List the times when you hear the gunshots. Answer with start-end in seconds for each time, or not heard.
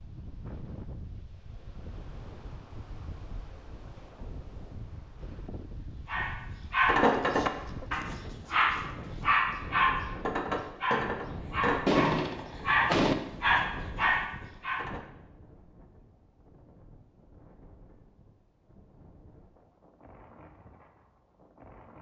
11.8-13.2.